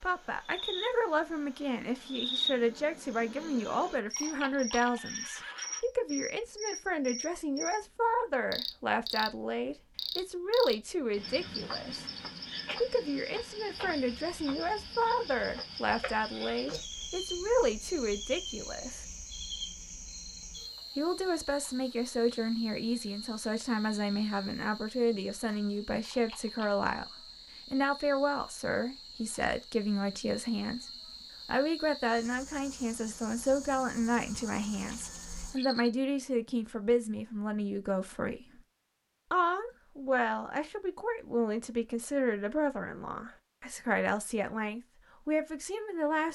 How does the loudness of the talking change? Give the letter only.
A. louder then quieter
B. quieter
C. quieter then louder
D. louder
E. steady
E.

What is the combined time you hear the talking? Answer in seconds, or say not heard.
42 s.